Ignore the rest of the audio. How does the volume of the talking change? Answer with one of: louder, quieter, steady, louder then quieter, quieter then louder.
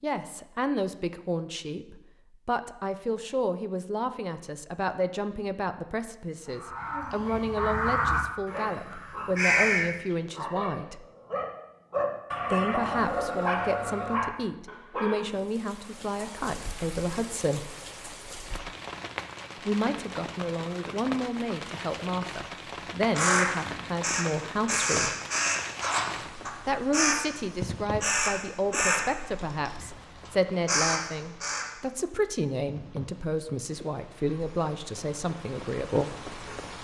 steady.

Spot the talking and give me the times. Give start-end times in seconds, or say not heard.
0.0-11.1, 12.5-17.7, 19.6-25.1, 26.6-36.1.